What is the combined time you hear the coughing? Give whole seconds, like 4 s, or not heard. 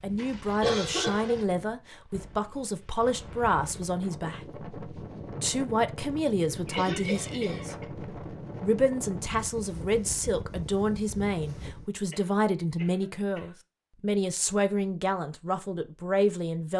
4 s.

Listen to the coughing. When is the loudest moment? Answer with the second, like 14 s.
1 s.